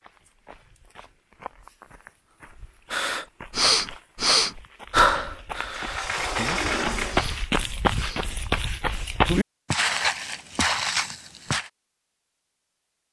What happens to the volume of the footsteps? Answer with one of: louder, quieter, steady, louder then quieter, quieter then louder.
louder.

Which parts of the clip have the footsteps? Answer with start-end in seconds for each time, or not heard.
0.0-11.7.